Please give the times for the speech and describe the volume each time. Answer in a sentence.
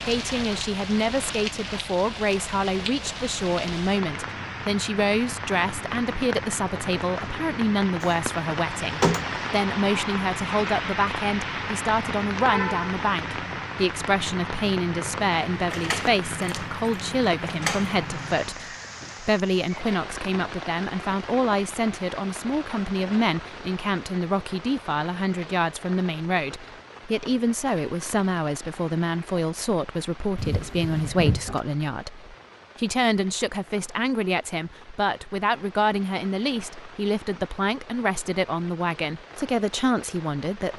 You can hear the speech from 0.1 to 40.7 s, at a steady volume.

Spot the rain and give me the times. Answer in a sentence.
The rain can be heard from 0.0 to 40.7 s.